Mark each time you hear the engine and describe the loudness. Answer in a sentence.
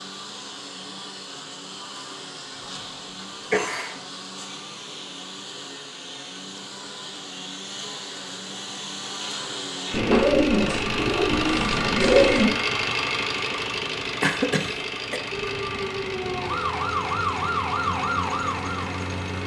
The engine can be heard from 0.0 to 19.4 s, getting louder then quieter.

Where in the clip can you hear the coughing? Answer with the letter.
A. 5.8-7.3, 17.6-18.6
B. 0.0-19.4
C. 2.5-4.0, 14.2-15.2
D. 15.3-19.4
C.